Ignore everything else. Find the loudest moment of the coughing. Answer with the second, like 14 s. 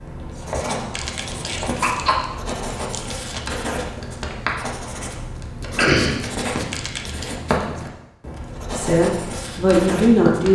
6 s.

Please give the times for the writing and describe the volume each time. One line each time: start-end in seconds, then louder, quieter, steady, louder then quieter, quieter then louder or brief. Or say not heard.
0.0-10.4 steady.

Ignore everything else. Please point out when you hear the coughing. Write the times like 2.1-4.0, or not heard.
1.6-2.2, 5.6-6.7.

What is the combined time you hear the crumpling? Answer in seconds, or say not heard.
3 s.